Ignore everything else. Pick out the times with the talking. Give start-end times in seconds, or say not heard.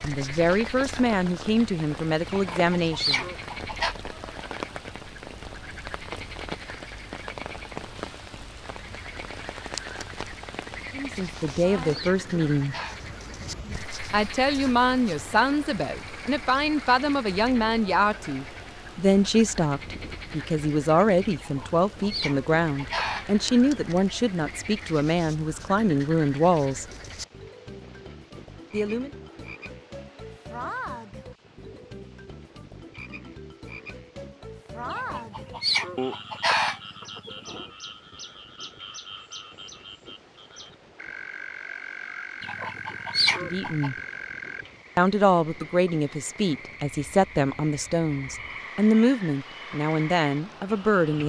0.0-3.2, 10.9-12.8, 14.1-26.9, 28.7-29.1, 43.4-44.0, 45.0-51.2.